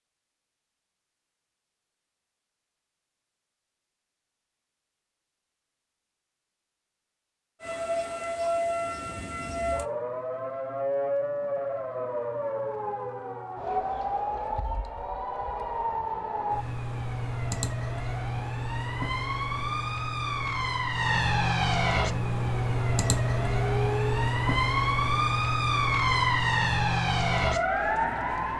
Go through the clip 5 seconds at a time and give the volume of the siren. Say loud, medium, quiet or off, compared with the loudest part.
off, medium, medium, medium, loud, loud.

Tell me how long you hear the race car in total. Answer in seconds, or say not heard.
2 s.